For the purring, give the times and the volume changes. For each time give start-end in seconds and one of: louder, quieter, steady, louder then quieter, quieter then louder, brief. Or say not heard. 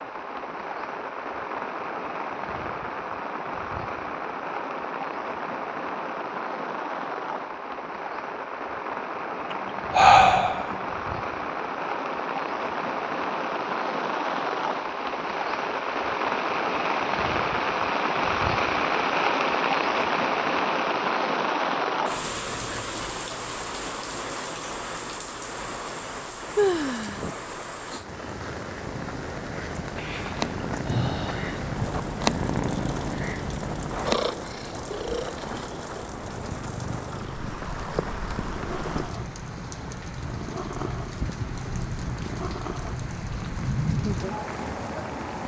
28.8-45.4 quieter.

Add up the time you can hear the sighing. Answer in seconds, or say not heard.
3 s.